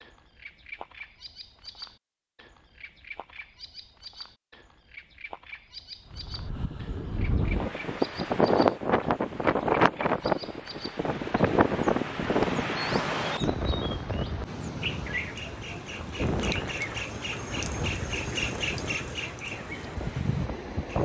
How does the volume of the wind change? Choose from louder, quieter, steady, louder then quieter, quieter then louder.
quieter.